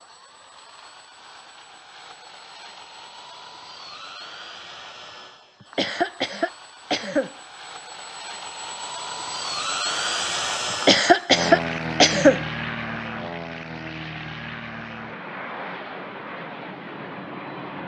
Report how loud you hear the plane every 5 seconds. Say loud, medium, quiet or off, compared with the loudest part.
quiet, medium, loud, medium.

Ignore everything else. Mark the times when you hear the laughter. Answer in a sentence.
The laughter can be heard from 5.7 to 7.3 s and from 10.8 to 12.4 s.